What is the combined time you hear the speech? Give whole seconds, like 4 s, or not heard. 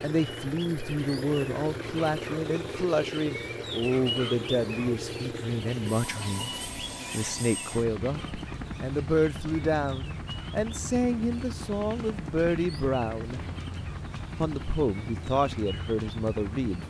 15 s.